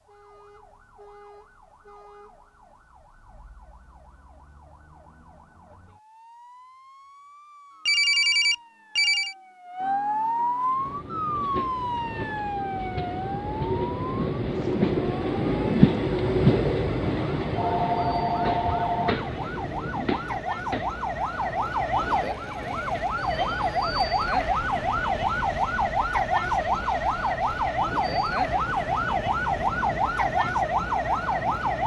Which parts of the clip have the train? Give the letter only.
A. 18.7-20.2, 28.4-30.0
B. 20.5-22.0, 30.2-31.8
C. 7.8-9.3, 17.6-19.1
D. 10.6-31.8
D.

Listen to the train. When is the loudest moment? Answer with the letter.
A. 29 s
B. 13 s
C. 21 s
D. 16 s
D.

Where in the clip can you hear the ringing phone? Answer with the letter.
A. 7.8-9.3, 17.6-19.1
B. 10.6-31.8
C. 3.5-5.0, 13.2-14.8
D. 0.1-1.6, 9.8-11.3
A.